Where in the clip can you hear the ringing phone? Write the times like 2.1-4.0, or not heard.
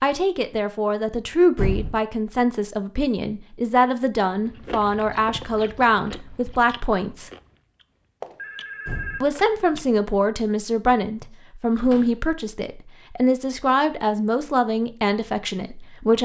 8.2-9.6.